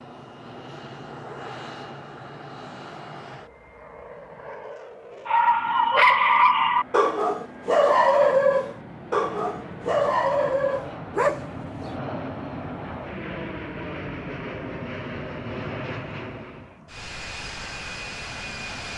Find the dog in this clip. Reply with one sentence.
The dog can be heard from 5.2 to 11.9 s.